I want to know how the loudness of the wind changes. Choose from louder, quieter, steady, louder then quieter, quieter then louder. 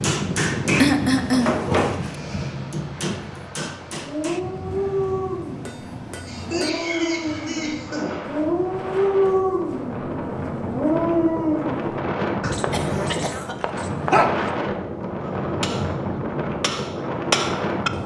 quieter then louder.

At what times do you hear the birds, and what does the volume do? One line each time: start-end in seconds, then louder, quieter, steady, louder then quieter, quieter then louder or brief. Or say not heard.
not heard.